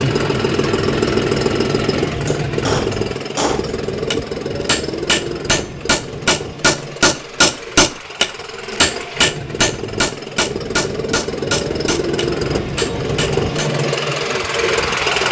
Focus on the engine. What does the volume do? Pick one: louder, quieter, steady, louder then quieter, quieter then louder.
quieter then louder.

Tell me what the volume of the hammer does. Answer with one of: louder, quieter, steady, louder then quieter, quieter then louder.
louder then quieter.